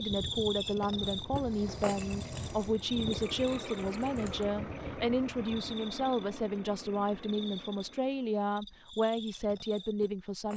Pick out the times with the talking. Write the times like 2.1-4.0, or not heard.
0.0-10.5.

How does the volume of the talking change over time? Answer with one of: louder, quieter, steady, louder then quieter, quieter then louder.
steady.